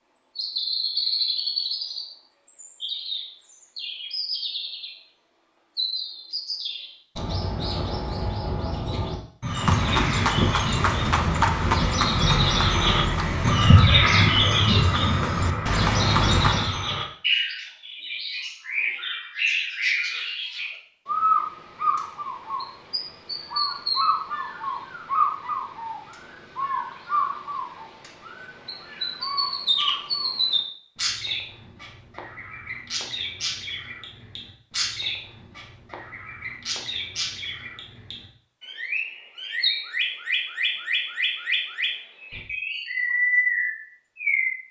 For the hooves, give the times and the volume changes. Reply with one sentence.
You can hear the hooves from 9.4 to 16.8 s, getting quieter then louder.